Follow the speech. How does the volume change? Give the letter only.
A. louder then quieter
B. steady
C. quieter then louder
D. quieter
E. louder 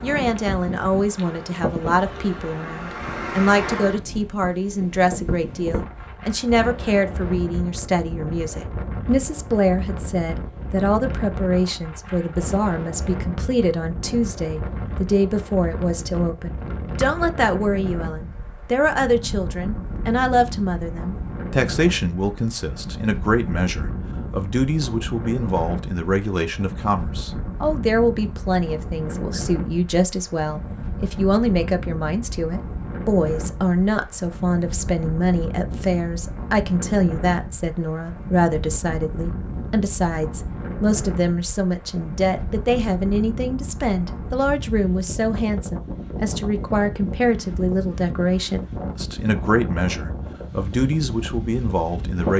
B.